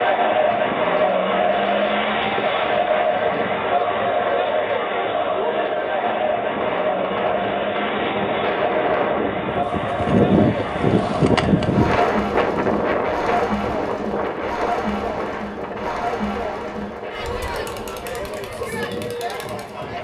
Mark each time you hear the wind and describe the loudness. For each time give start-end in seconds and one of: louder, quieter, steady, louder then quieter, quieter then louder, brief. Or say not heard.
0.1-19.9 louder then quieter.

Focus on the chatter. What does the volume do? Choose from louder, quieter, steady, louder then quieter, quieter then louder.
quieter.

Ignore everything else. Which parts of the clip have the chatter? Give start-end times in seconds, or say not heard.
0.0-19.9.